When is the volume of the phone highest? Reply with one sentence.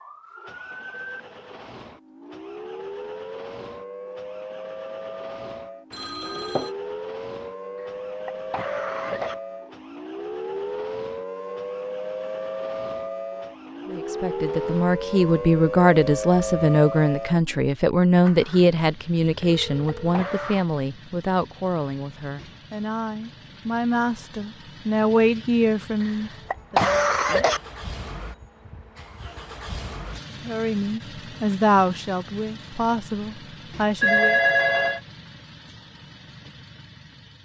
The volume of the phone peaks at 34 seconds.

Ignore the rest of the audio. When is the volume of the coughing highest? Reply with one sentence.
The volume of the coughing peaks at 27 seconds.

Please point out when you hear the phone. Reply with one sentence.
You can hear the phone from 5.9 to 6.7 s, from 19.2 to 20.2 s and from 34.0 to 35.0 s.